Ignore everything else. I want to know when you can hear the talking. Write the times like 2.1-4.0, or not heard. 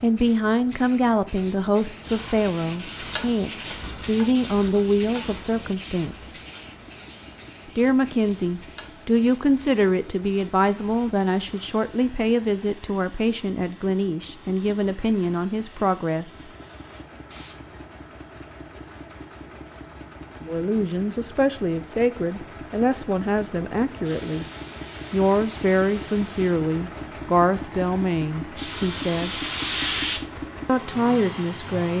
0.0-6.3, 7.8-16.5, 20.4-24.4, 25.1-29.4, 30.6-31.9.